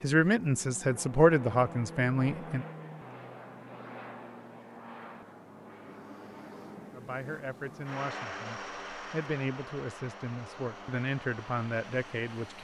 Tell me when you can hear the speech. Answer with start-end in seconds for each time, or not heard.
0.0-2.6, 6.9-12.5.